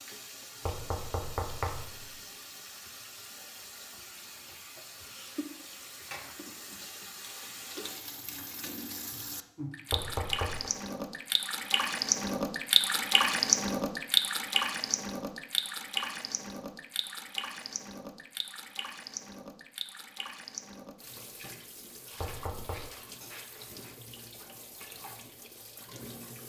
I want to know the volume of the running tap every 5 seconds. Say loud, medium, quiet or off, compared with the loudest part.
quiet, quiet, loud, medium, quiet, quiet.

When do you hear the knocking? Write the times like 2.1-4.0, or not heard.
0.7-2.1, 9.9-10.7, 22.1-22.8.